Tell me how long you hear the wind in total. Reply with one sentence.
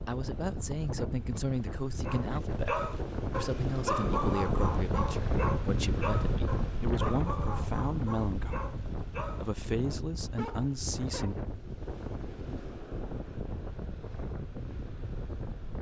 The wind can be heard for 16 seconds in total.